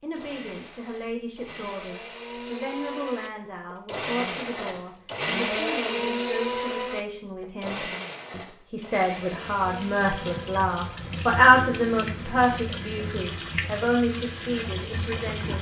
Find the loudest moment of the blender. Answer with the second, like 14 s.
6 s.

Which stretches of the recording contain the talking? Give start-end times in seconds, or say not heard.
0.0-15.5.